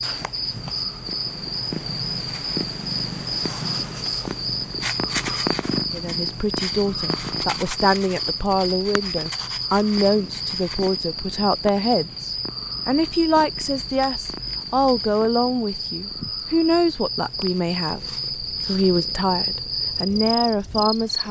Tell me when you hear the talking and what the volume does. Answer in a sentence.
The talking can be heard from 5.9 to 21.2 s, at a steady volume.